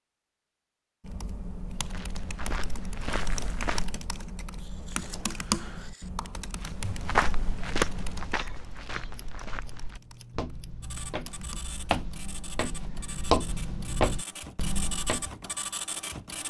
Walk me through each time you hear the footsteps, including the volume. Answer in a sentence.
You can hear the footsteps briefly from 1.9 to 4.0 s; and from 6.6 to 15.2 s, getting quieter then louder.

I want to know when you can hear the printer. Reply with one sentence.
The printer can be heard from 10.8 to 16.4 s.